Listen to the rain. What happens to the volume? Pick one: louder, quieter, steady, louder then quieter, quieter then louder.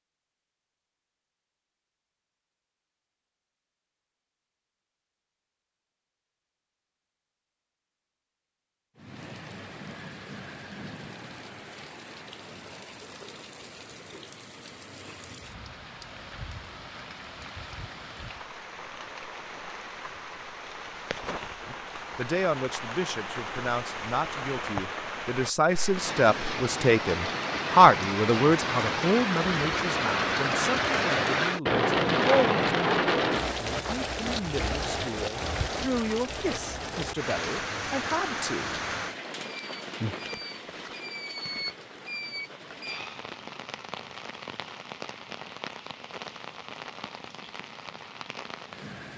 louder then quieter.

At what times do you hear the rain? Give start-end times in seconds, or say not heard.
8.9-49.1.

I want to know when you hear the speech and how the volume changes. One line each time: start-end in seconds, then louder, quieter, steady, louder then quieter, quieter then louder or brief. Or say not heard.
21.7-38.8 louder then quieter.